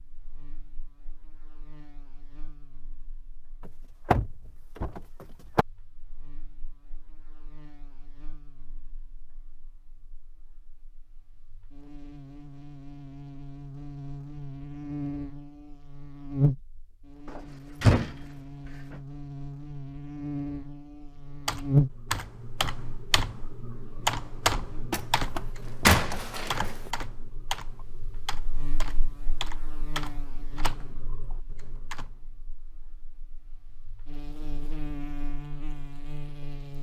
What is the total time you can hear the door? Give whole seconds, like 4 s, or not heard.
5 s.